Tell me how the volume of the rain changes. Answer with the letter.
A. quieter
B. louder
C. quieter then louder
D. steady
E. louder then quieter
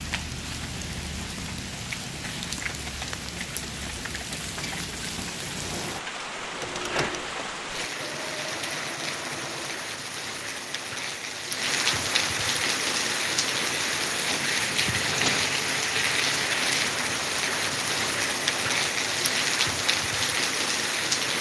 B.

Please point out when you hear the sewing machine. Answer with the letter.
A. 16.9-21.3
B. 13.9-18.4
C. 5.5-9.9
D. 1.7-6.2
C.